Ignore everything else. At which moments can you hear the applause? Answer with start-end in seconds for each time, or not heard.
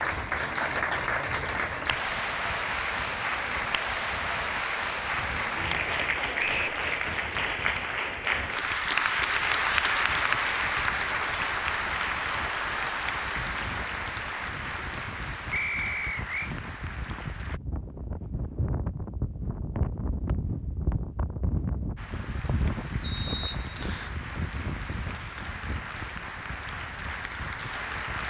0.0-17.6, 21.9-28.2.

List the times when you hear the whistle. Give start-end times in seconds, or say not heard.
6.3-6.8, 15.5-16.5, 23.0-24.1.